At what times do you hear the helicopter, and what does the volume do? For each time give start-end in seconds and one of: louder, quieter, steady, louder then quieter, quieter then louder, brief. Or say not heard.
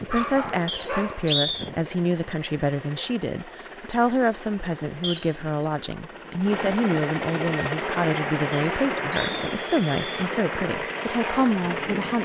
0.0-12.2 louder.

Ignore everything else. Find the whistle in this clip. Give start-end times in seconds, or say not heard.
0.7-1.7, 5.0-5.5, 8.5-10.3.